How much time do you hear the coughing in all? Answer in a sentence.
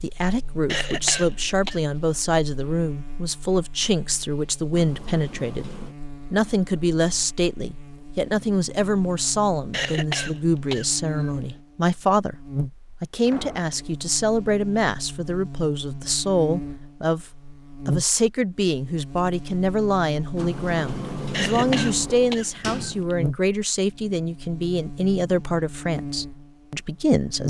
You can hear the coughing for 5 seconds altogether.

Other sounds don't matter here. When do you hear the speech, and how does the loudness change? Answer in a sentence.
The speech can be heard from 0.0 to 5.7 s, at a steady volume; and from 6.3 to 27.4 s, at a steady volume.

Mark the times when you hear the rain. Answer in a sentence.
You can't hear the rain here.